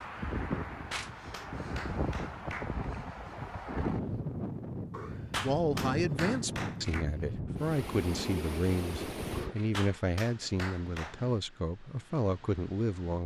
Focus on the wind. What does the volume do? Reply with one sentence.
The loudness of the wind goes down.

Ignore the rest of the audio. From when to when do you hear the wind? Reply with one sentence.
The wind can be heard from 0.0 to 13.2 s.